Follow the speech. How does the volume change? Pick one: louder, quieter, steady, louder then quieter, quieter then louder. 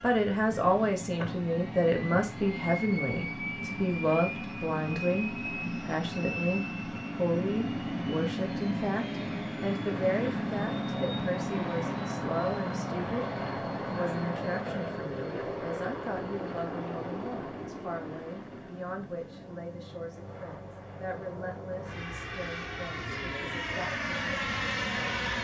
quieter.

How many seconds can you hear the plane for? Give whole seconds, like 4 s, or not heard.
25 s.